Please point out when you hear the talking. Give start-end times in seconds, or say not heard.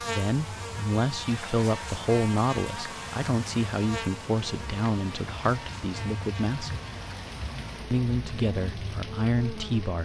0.1-6.8, 7.9-9.9.